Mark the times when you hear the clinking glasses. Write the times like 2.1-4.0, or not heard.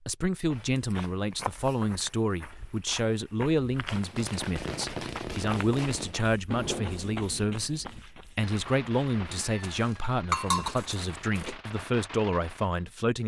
10.3-11.6.